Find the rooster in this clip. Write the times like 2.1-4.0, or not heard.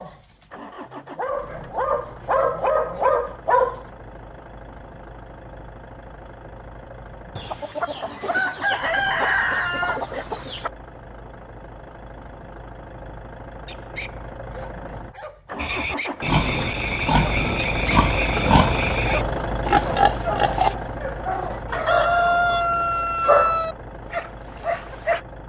7.3-10.7, 21.7-23.8.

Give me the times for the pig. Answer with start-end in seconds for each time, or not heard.
15.6-20.8.